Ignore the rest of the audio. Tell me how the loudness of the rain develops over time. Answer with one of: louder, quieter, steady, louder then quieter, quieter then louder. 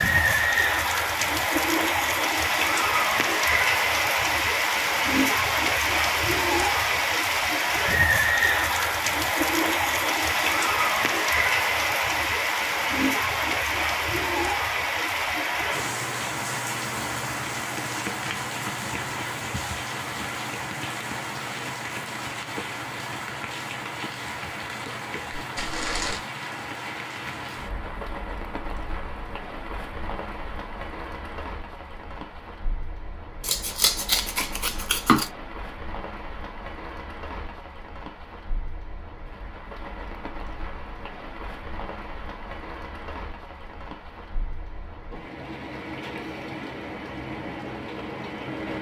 quieter.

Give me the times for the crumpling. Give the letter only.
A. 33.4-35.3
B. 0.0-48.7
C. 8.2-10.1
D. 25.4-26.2
D.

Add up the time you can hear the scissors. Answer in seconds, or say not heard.
2 s.